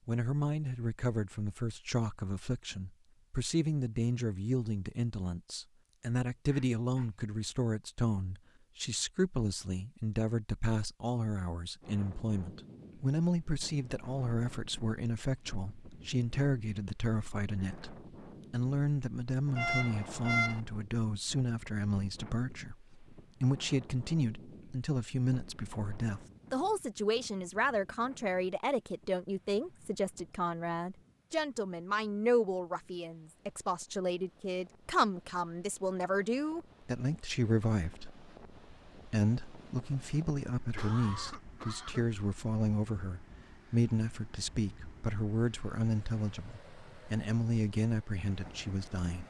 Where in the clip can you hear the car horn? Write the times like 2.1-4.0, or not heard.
19.6-20.6.